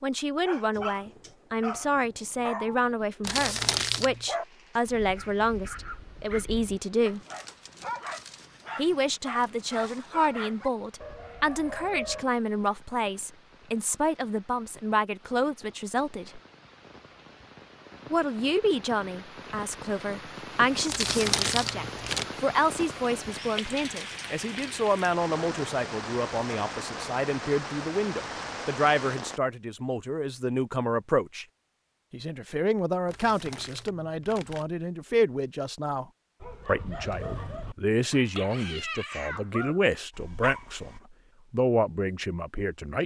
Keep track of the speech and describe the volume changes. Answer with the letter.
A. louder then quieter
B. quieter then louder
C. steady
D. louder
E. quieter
C.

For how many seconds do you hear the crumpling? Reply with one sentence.
The crumpling can be heard for 4 seconds in total.